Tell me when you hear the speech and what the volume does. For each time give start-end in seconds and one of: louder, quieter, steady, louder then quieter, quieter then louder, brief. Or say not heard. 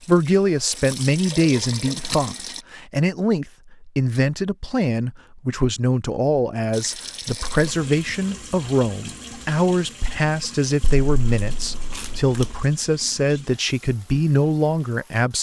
0.1-15.3 steady.